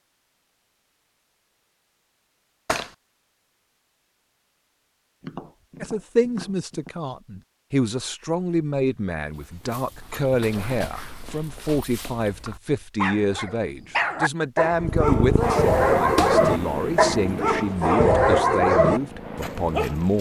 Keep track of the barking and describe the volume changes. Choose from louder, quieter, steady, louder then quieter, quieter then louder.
louder.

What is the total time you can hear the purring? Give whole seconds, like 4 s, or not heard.
5 s.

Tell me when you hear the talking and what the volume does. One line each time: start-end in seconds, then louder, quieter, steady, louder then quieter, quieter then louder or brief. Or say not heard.
5.8-20.1 steady.